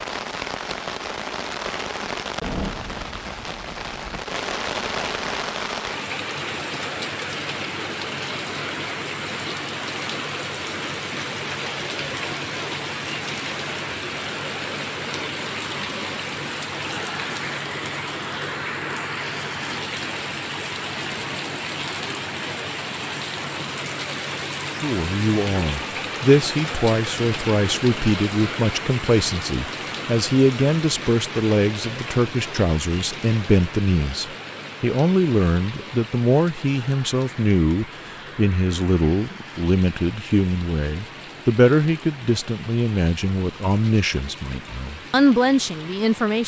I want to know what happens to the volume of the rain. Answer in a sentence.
The loudness of the rain goes down.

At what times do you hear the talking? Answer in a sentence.
The talking can be heard from 24.8 to 46.4 s.